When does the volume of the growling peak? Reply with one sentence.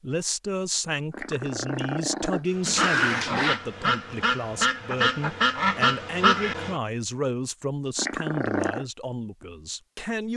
The volume of the growling peaks at 3 seconds.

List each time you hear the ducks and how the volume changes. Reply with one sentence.
You can hear the ducks from 2.5 to 6.8 s, getting louder.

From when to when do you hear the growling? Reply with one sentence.
You can hear the growling from 1.1 to 3.6 s and from 8.0 to 8.8 s.